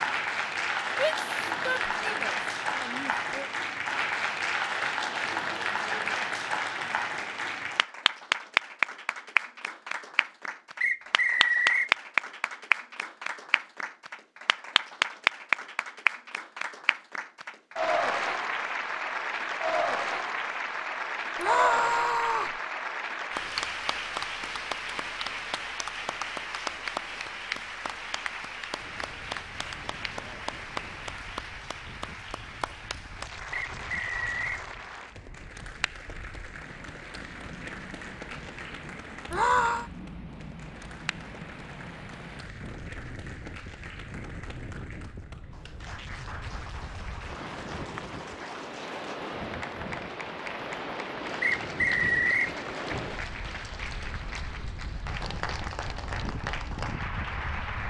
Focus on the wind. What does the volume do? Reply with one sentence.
The loudness of the wind goes up.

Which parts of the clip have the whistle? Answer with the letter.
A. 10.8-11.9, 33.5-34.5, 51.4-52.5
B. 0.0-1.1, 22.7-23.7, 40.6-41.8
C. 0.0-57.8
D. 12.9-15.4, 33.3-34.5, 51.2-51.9
A.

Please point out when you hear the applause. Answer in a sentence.
You can hear the applause from 0.0 to 57.8 s.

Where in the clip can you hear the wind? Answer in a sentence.
You can hear the wind from 28.8 to 57.8 s.